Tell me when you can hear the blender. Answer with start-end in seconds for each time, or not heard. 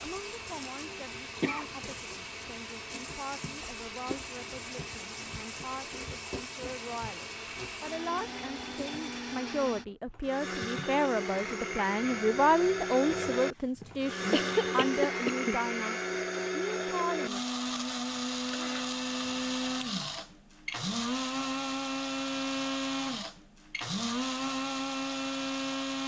0.0-26.0.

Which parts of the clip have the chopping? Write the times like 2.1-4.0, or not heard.
not heard.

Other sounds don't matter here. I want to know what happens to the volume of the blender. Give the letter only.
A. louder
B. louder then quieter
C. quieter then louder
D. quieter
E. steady
A.